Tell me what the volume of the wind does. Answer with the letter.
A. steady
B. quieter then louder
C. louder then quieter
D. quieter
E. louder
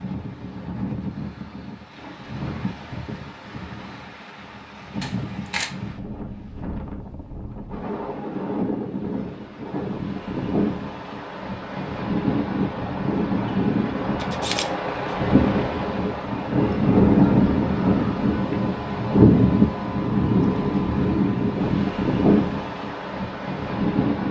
E.